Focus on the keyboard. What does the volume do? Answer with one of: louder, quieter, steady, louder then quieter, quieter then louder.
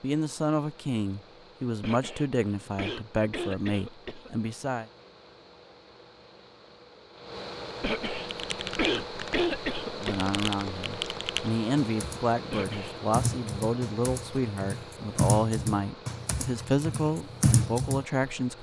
louder.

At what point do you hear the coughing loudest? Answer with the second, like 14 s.
10 s.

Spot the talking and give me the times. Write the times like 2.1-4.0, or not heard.
0.0-4.8, 9.9-18.5.